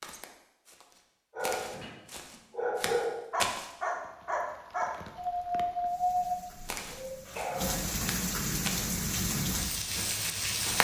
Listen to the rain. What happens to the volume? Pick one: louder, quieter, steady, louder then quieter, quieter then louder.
louder.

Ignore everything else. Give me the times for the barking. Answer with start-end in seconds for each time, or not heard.
1.3-8.1.